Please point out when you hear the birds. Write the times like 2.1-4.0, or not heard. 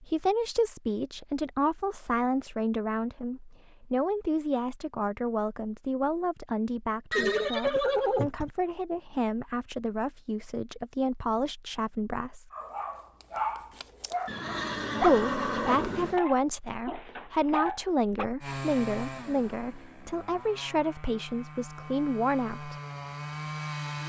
not heard.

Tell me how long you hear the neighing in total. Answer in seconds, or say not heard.
3 s.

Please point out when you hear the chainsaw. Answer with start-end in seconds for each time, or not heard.
18.4-24.0.